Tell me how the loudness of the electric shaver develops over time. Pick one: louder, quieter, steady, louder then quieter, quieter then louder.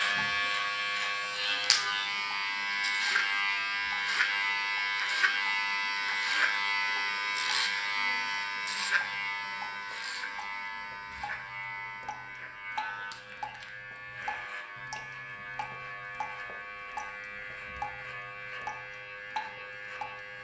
quieter.